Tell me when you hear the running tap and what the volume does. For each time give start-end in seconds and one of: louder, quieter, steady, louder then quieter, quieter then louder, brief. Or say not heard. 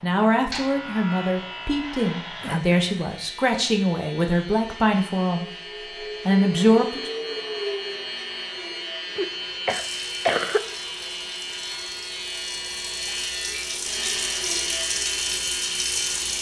9.7-16.3 louder.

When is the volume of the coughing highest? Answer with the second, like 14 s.
10 s.